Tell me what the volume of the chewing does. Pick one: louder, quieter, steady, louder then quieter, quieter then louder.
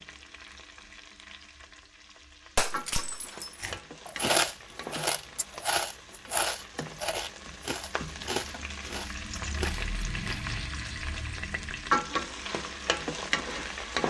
quieter.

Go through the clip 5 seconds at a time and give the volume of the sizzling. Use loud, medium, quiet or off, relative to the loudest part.
quiet, medium, loud.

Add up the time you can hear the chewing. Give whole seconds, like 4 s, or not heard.
7 s.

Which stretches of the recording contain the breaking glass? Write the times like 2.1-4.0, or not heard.
2.5-3.7.